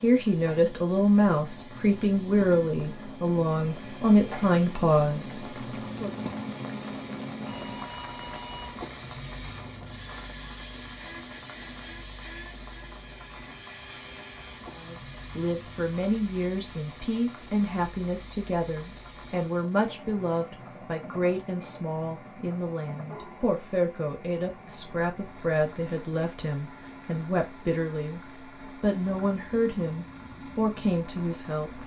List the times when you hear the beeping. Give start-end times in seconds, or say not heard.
7.5-8.8.